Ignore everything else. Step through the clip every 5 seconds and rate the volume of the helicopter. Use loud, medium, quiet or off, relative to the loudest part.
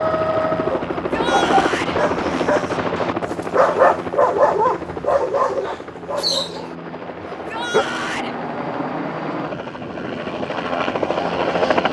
loud, medium, loud.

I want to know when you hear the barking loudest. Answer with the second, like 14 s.
4 s.